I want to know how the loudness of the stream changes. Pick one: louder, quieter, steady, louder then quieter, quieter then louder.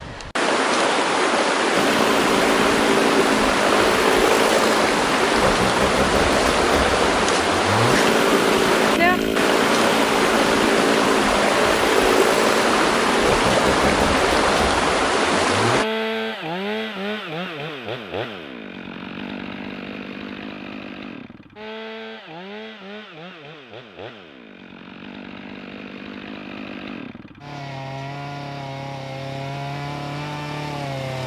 steady.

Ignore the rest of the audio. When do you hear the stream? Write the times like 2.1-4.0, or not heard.
0.0-15.8.